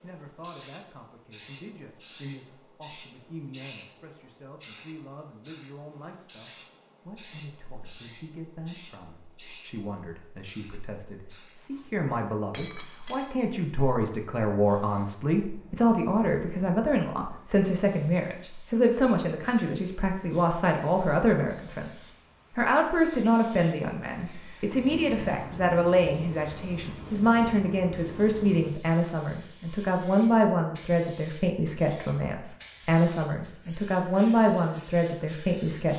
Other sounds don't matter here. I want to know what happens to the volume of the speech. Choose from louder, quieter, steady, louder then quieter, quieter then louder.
louder.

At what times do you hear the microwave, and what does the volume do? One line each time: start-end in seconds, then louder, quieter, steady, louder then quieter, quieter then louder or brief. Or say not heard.
not heard.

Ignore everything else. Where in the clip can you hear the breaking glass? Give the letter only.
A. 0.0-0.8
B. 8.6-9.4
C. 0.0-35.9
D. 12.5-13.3
D.